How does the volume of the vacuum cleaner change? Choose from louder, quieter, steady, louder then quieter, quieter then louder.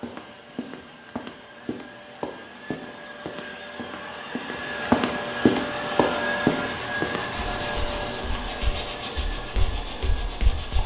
louder then quieter.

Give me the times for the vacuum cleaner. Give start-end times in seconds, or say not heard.
0.0-10.6.